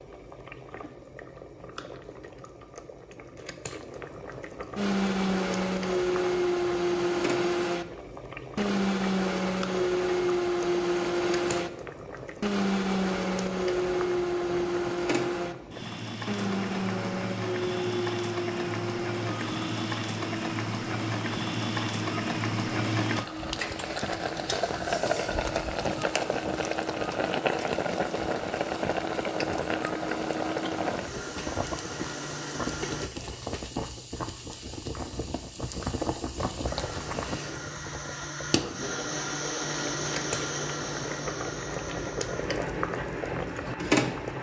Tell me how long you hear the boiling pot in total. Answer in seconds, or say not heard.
44 s.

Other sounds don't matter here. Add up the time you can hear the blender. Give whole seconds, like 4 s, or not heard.
36 s.